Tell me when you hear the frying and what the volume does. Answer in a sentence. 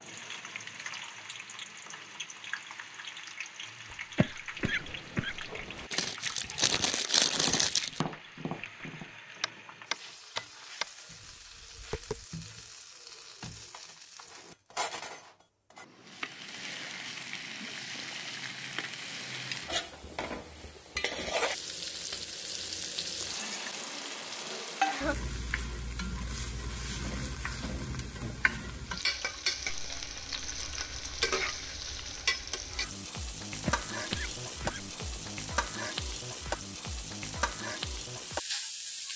You can hear the frying from 0.0 to 39.1 s, getting louder.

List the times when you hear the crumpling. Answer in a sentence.
The crumpling can be heard from 5.9 to 8.0 s and from 29.6 to 32.1 s.